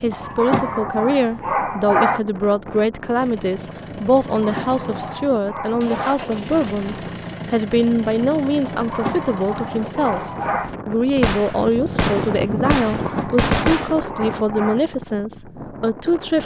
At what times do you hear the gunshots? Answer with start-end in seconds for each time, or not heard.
11.2-13.9.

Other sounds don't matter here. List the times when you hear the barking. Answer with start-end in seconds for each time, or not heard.
0.1-2.2, 4.3-6.2, 8.6-10.8, 12.9-14.8.